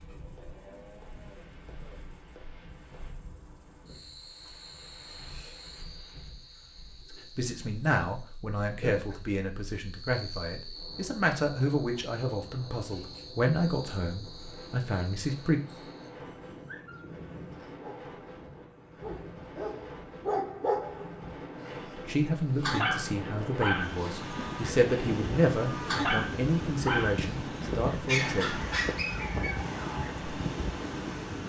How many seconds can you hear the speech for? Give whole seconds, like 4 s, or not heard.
15 s.